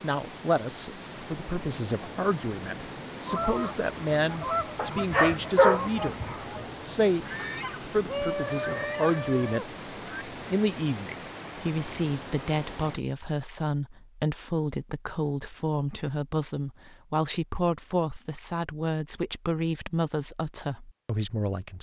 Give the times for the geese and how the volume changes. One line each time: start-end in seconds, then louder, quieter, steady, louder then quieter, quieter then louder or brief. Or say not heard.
3.2-10.2 quieter then louder.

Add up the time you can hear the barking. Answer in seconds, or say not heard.
2 s.